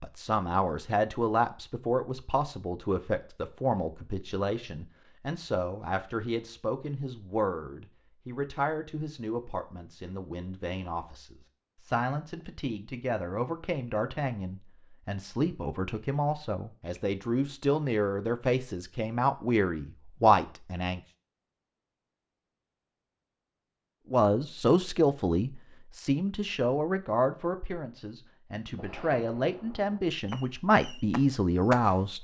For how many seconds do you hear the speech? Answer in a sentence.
You can hear the speech for 29 seconds altogether.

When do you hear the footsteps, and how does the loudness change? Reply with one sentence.
The footsteps can't be heard in this clip.